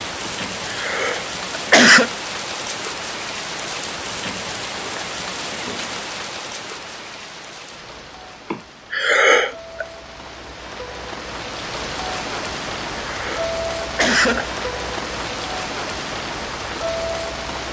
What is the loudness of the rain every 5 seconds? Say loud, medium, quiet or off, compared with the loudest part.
loud, medium, loud, loud.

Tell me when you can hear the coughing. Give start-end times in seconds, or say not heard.
0.2-2.1, 8.5-9.8, 12.5-14.7.